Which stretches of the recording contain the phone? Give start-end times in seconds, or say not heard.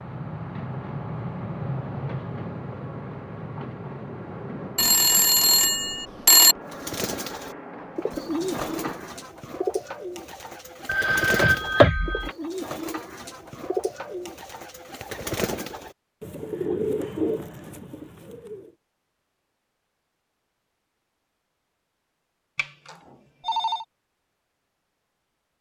4.8-6.5, 10.8-12.3, 22.6-23.9.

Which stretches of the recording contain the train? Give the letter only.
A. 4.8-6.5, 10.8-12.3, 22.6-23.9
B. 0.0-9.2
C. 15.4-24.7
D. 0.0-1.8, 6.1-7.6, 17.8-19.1
B.